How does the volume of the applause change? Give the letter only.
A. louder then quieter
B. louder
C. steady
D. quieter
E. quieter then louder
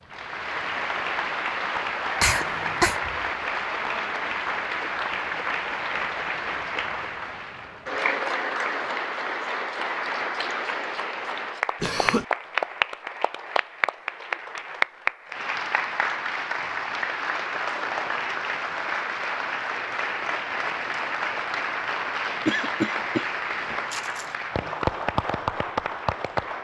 C.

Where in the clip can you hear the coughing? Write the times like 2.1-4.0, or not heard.
2.2-3.0, 11.8-12.2, 22.4-24.2.